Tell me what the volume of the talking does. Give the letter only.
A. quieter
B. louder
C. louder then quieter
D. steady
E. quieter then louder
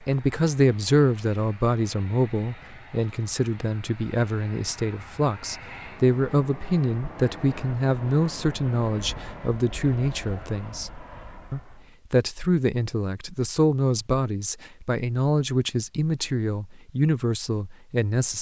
D.